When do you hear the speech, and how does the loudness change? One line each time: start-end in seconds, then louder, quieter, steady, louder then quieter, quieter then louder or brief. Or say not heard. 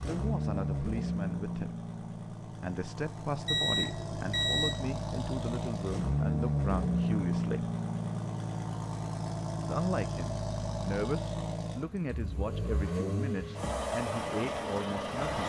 0.0-7.7 steady
9.7-15.4 steady.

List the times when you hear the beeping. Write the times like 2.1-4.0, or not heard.
3.5-4.8.